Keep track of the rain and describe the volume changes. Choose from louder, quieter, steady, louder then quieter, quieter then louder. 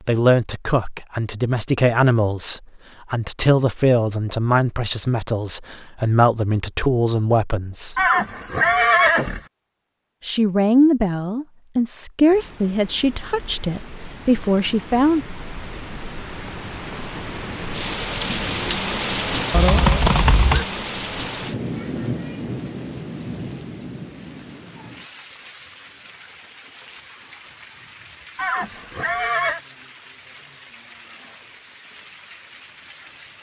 louder then quieter.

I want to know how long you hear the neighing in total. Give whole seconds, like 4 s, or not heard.
4 s.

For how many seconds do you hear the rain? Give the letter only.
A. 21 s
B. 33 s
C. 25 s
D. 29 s
A.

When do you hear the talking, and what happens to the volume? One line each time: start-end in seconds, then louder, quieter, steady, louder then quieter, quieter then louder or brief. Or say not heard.
0.1-8.1 steady
10.2-15.2 quieter then louder.